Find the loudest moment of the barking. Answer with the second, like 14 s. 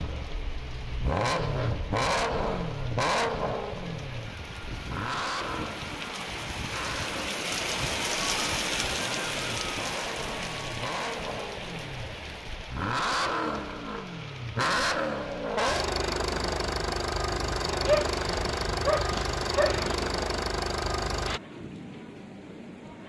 18 s.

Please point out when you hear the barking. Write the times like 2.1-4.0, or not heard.
17.9-20.1.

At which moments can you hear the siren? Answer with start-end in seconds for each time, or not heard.
not heard.